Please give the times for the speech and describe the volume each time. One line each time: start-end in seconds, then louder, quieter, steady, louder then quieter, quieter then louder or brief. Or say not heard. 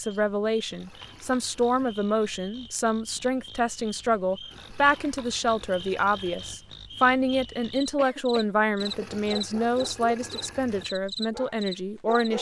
0.0-12.3 steady.